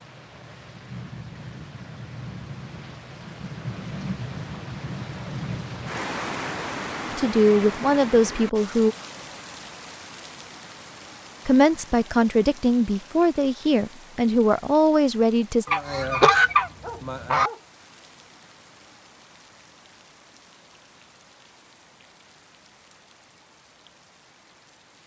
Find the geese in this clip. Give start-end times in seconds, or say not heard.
15.7-17.5.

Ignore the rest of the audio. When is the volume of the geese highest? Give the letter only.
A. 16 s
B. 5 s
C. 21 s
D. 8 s
A.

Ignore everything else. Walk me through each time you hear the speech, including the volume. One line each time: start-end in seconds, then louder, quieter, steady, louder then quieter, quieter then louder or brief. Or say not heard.
7.0-8.9 brief
11.4-15.7 steady.